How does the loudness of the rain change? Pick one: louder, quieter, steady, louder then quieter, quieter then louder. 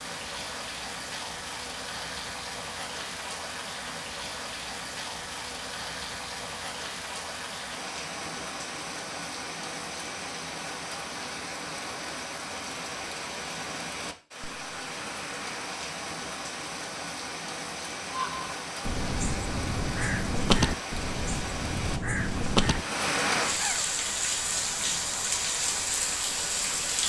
louder.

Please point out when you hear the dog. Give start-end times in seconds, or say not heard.
not heard.